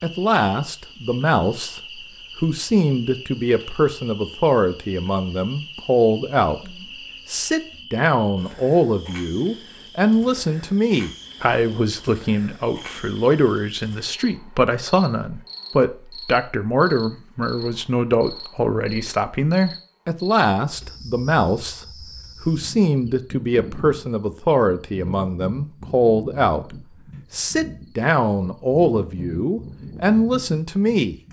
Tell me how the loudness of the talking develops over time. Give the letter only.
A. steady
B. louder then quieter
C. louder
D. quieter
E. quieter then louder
A.